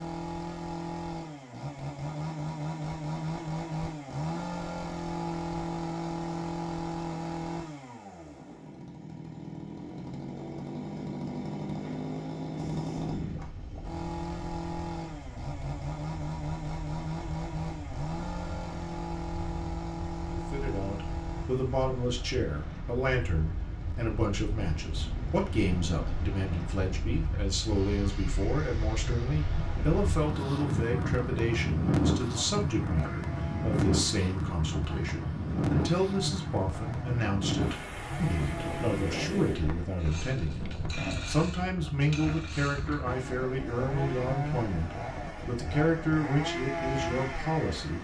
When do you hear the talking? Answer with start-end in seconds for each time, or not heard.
20.3-48.0.